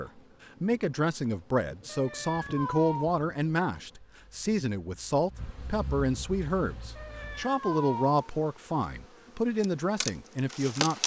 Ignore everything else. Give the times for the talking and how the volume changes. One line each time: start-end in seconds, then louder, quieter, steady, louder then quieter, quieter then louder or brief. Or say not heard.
0.0-11.0 steady.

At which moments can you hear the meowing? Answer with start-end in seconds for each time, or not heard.
1.9-3.1, 7.0-8.2.